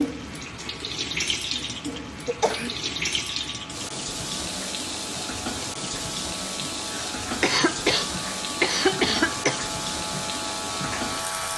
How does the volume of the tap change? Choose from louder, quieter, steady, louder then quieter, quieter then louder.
steady.